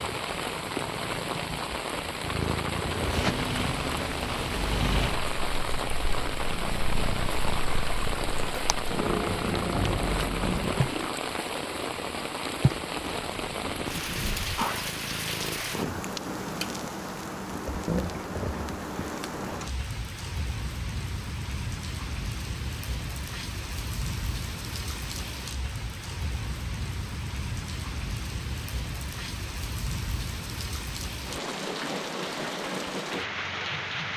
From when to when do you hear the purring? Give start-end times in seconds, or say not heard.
0.0-16.1.